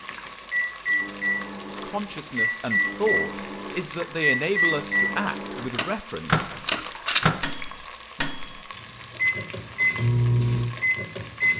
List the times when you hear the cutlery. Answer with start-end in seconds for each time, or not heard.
not heard.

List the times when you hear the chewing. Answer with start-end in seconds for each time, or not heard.
6.7-7.5.